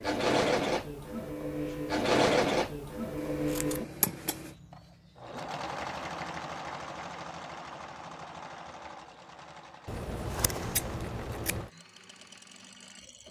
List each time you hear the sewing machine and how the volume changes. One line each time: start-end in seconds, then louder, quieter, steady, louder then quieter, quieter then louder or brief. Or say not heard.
0.0-13.2 quieter.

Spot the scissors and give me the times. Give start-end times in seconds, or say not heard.
3.1-4.5, 9.8-11.7.